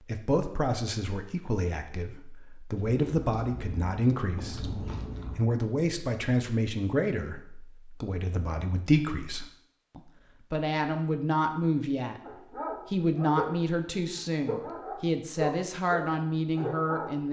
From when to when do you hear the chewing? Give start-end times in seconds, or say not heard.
2.8-5.4.